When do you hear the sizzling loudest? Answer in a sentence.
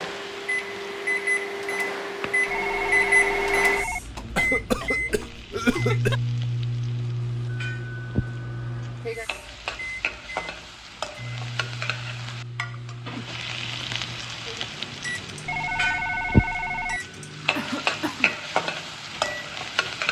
The volume of the sizzling peaks at 16 seconds.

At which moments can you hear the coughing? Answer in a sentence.
You can hear the coughing from 4.2 to 6.2 s and from 17.6 to 18.4 s.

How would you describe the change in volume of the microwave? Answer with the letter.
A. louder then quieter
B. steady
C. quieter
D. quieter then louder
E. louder
C.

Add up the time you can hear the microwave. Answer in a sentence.
You can hear the microwave for 20 seconds altogether.